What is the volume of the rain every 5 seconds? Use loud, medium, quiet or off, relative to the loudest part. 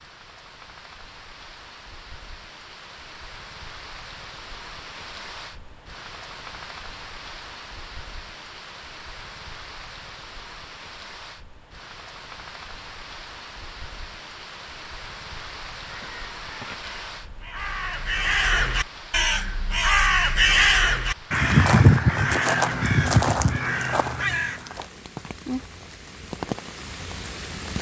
medium, medium, medium, medium, medium, loud.